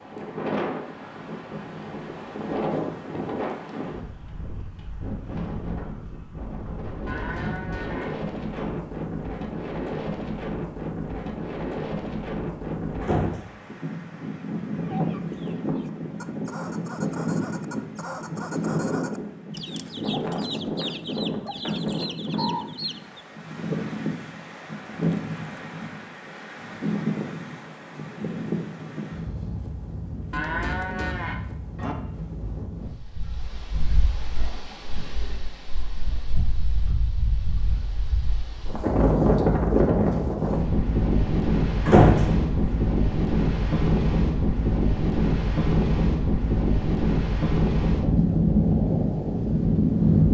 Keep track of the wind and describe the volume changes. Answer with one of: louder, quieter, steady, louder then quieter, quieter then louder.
louder.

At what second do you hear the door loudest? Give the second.
42 s.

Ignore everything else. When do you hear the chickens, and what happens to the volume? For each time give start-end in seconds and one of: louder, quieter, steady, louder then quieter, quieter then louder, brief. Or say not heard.
14.7-23.2 louder.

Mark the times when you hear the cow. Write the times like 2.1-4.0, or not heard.
7.0-8.7, 30.3-31.9.